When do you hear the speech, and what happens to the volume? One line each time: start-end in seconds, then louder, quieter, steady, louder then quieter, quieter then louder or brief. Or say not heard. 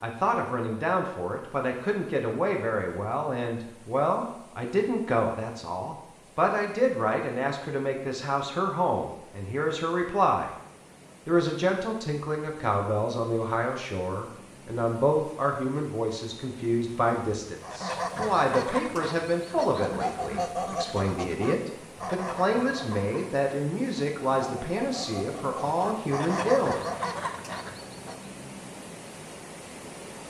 0.0-10.5 steady
11.2-26.8 steady.